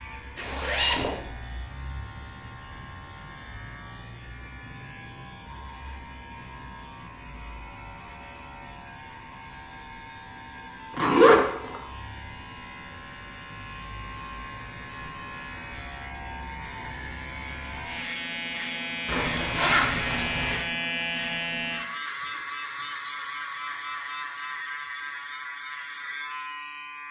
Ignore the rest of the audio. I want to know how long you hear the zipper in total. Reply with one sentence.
The zipper can be heard for 3 seconds in total.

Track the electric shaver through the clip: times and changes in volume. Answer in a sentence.
You can hear the electric shaver from 0.0 to 27.0 s, getting louder.